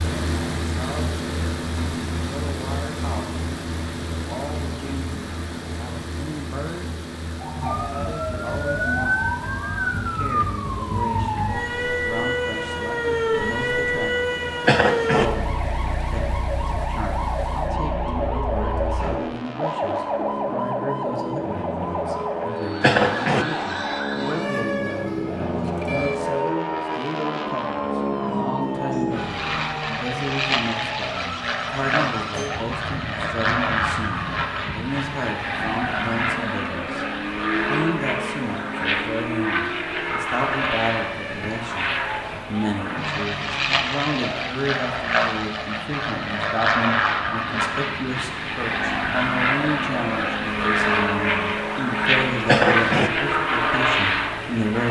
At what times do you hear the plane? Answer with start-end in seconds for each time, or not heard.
0.0-54.8.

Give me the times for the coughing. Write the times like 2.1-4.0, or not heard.
14.7-15.2, 22.8-23.4, 52.5-53.1.